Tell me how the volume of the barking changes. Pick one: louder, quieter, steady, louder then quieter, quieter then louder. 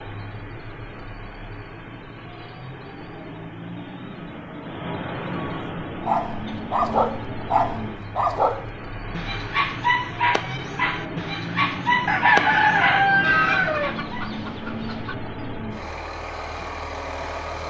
steady.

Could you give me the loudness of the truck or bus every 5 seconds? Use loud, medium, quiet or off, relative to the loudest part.
medium, loud, loud, loud.